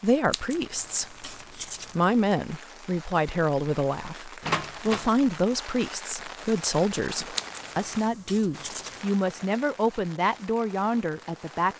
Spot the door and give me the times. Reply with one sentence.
The door can be heard from 4.4 to 5.1 s.